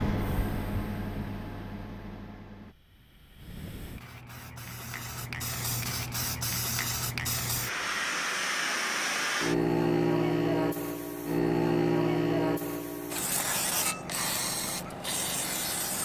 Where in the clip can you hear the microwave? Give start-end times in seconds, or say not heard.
0.0-2.8.